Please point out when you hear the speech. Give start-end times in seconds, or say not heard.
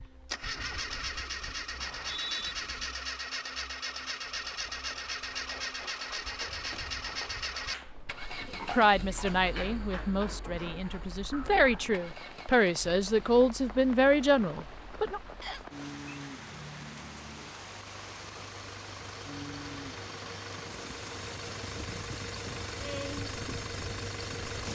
8.7-15.2.